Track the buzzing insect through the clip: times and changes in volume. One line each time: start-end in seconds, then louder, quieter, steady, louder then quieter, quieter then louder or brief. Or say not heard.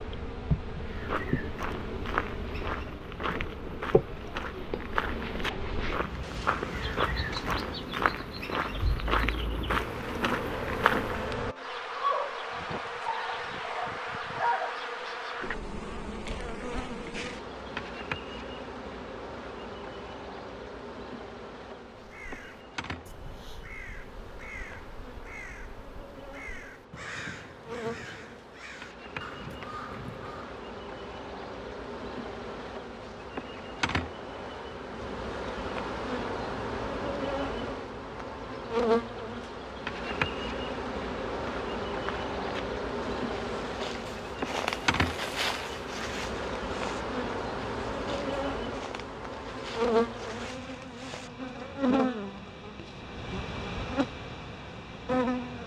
0.0-55.6 quieter then louder.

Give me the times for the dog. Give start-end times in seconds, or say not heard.
not heard.